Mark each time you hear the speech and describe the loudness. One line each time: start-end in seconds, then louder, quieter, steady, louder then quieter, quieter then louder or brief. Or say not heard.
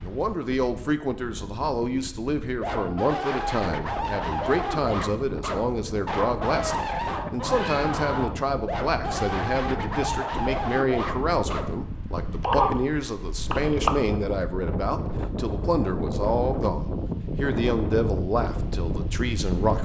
0.0-19.7 steady.